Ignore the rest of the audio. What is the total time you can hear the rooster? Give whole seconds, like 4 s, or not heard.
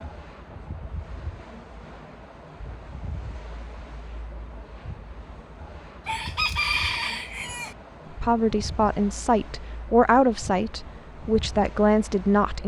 2 s.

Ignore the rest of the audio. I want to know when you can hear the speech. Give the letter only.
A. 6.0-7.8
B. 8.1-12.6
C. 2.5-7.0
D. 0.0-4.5
B.